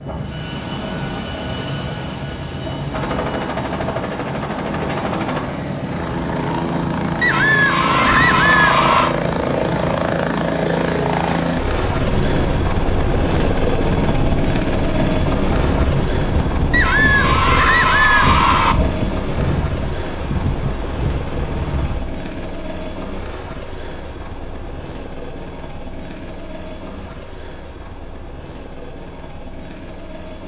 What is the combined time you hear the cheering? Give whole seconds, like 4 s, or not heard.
4 s.